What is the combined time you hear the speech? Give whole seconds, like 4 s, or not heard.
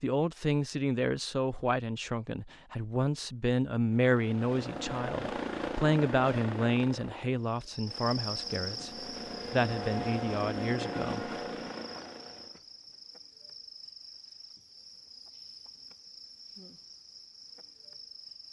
11 s.